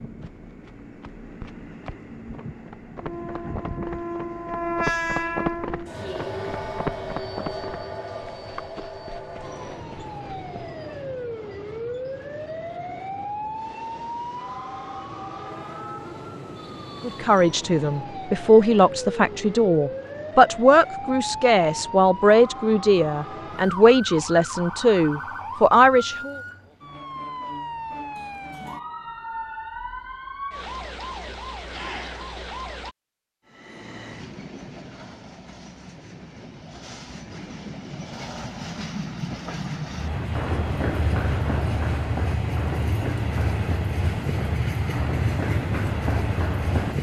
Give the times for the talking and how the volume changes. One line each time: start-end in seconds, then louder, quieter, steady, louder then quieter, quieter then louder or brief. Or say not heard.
17.0-26.4 steady.